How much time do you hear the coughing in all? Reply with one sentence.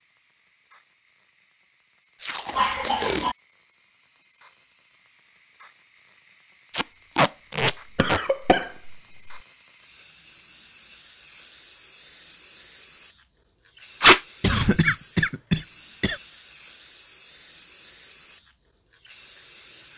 The coughing can be heard for 4 seconds in total.